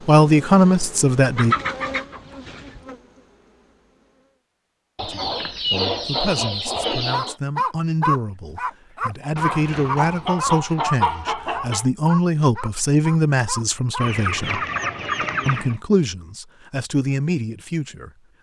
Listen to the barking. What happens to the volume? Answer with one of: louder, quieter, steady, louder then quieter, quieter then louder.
quieter.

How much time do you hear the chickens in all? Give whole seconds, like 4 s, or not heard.
8 s.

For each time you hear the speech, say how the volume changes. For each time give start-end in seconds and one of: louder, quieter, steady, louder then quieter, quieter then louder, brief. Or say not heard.
0.1-1.6 brief
5.0-14.6 louder
15.4-18.1 brief.